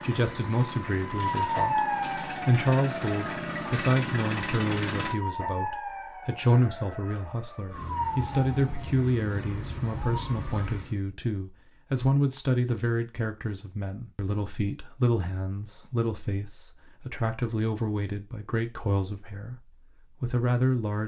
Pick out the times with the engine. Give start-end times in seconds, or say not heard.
0.0-5.2.